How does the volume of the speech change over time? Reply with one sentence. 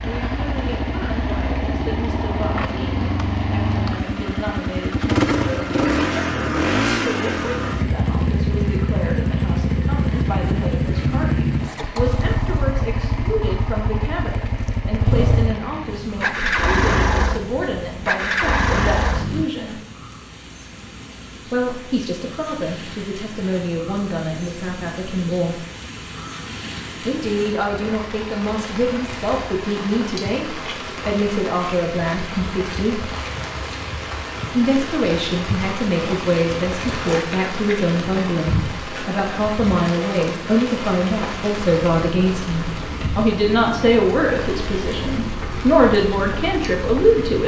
The loudness of the speech goes up.